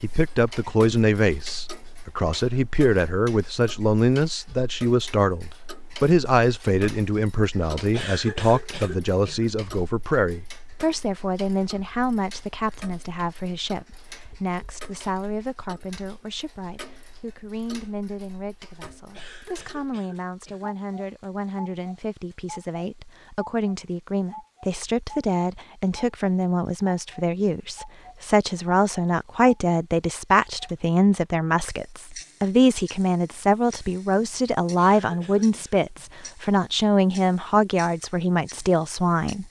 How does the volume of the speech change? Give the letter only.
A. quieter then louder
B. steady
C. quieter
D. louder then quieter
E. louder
A.